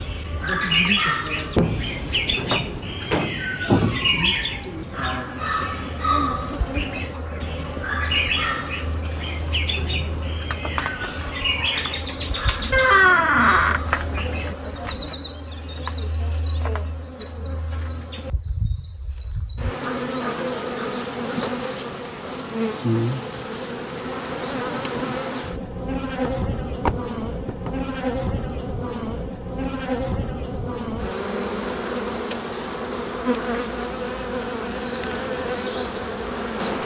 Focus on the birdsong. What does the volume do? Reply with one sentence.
The volume of the birdsong goes down.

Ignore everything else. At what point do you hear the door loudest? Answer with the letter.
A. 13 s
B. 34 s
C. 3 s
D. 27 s
A.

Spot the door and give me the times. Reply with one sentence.
You can hear the door from 2.4 to 3.5 s, from 12.7 to 13.8 s and from 26.2 to 27.9 s.